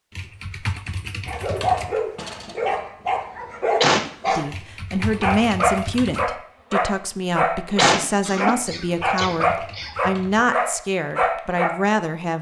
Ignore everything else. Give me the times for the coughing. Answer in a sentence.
The coughing can be heard from 3.8 to 4.5 s and from 7.8 to 9.9 s.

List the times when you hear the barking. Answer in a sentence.
You can hear the barking from 1.2 to 11.8 s.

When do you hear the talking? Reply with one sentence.
You can hear the talking from 4.3 to 12.3 s.